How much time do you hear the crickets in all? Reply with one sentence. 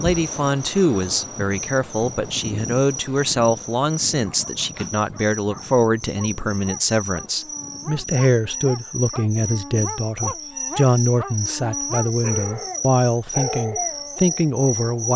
The crickets can be heard for 15 seconds in total.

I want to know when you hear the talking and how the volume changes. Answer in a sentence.
You can hear the talking from 0.0 to 15.1 s, at a steady volume.